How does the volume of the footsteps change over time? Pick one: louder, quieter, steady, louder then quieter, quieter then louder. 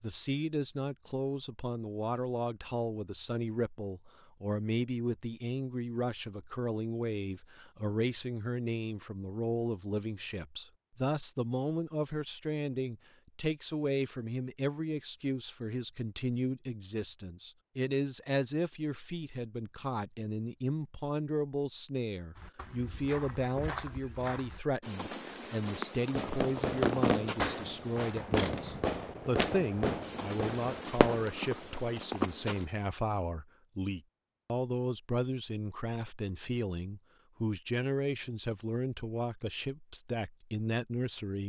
louder.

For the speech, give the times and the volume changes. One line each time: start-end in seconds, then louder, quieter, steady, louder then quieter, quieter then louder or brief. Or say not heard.
0.0-41.4 steady.